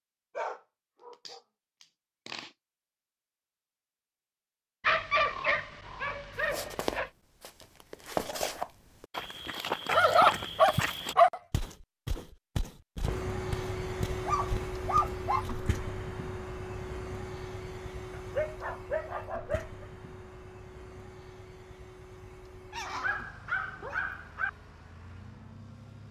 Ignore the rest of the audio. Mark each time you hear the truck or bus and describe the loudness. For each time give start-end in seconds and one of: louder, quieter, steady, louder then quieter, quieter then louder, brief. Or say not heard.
13.0-26.0 quieter.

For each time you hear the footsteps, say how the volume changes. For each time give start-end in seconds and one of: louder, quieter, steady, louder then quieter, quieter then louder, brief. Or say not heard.
6.3-15.7 quieter.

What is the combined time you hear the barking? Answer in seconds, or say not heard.
11 s.